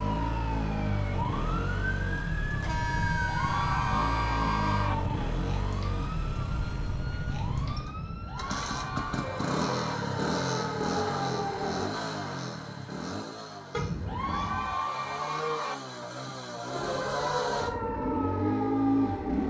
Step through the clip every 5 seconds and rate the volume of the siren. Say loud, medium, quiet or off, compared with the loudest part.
loud, medium, loud, loud.